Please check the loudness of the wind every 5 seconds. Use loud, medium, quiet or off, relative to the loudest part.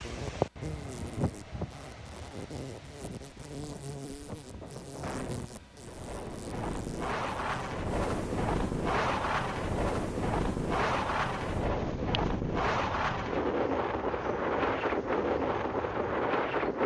medium, loud, loud, loud.